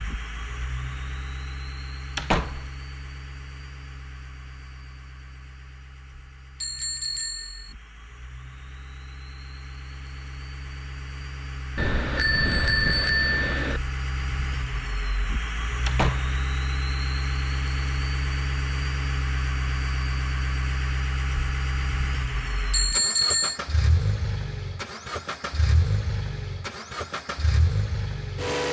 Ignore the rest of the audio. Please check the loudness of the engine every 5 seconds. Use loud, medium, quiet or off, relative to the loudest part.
medium, quiet, medium, loud, loud, loud.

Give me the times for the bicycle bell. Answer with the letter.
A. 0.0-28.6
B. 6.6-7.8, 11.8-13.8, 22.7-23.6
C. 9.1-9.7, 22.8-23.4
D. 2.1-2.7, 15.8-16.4
B.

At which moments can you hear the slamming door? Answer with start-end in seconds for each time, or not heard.
2.1-2.7, 15.8-16.4.